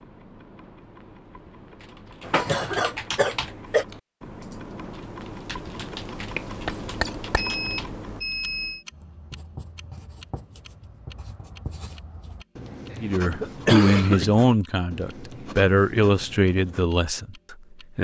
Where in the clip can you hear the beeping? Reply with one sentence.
The beeping can be heard from 7.3 to 8.8 s.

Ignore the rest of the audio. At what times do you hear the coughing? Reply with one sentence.
You can hear the coughing from 2.2 to 3.9 s, from 6.3 to 7.3 s and from 12.9 to 14.3 s.